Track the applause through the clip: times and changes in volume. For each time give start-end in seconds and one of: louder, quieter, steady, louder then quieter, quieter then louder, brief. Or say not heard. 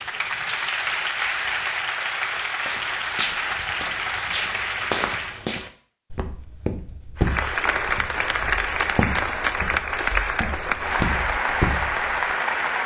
0.0-5.5 steady
7.2-12.8 steady.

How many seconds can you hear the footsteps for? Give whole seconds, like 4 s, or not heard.
10 s.